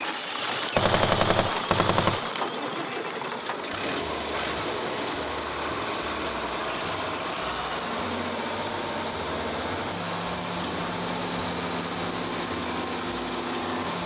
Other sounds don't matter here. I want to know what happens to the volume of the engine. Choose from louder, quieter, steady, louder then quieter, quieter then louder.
steady.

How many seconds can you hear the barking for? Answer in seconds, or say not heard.
not heard.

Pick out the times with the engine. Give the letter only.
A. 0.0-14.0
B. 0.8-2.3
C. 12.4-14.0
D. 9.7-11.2
A.